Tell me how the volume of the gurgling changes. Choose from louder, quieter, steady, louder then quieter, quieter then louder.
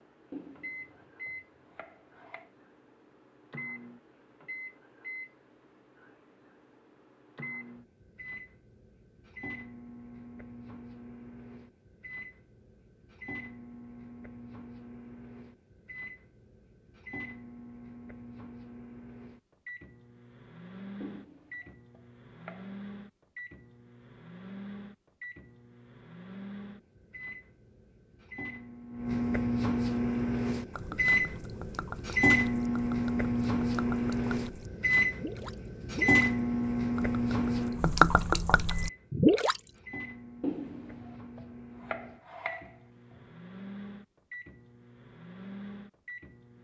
louder.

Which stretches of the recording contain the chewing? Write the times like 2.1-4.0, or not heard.
not heard.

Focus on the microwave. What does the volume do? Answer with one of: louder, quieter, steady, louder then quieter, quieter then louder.
louder then quieter.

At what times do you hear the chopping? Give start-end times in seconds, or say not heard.
0.3-2.5, 21.0-22.8, 40.4-43.2.